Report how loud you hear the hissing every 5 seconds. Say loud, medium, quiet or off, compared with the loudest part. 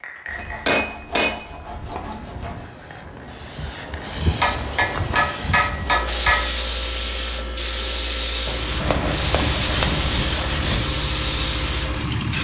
medium, loud, loud.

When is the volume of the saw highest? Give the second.
10 s.